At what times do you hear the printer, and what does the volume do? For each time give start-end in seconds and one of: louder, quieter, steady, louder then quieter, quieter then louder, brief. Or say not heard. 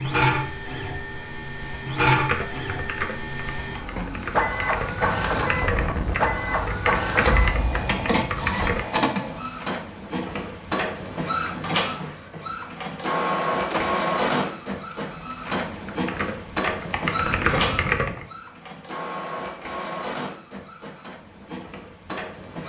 0.0-22.6 quieter.